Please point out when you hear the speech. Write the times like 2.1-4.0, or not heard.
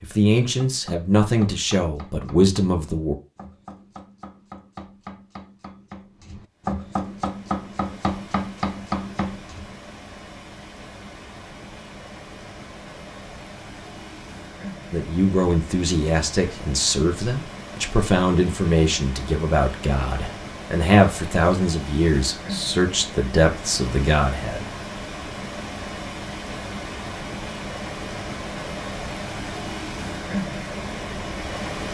0.0-3.1, 14.9-24.6.